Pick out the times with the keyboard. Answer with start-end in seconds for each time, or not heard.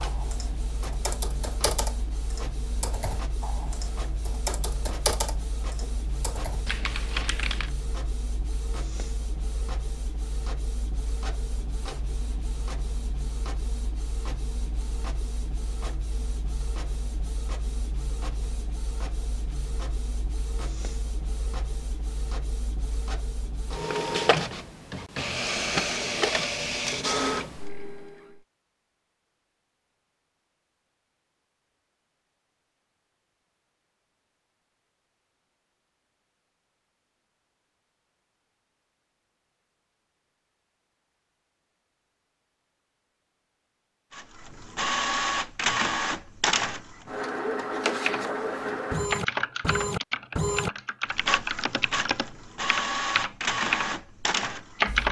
0.0-7.7, 48.0-55.0.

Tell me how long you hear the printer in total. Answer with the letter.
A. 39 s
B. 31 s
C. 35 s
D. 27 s
A.